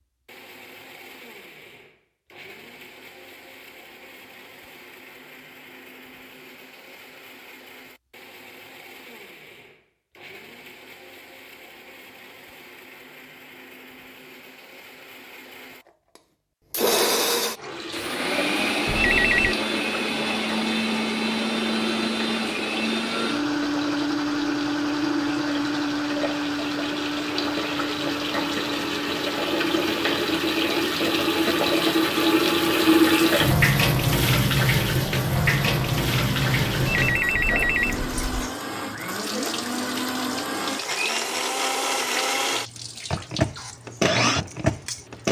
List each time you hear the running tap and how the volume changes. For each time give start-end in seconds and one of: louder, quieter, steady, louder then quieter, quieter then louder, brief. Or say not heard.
17.6-45.2 louder then quieter.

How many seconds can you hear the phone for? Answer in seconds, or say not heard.
2 s.